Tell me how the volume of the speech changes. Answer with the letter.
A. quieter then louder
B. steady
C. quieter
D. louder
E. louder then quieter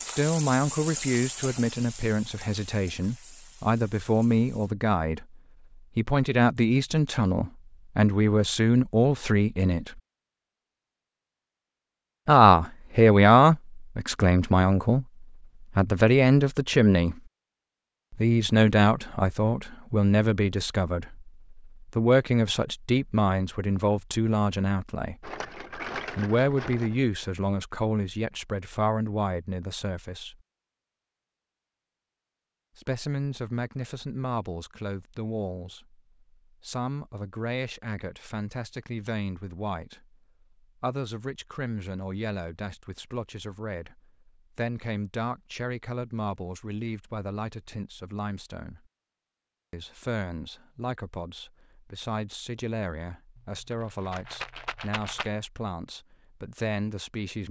C.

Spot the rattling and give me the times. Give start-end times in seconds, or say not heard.
25.2-27.0, 53.4-55.3.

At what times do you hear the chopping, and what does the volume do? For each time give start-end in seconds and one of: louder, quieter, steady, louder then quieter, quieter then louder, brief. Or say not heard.
not heard.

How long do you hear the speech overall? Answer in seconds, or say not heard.
50 s.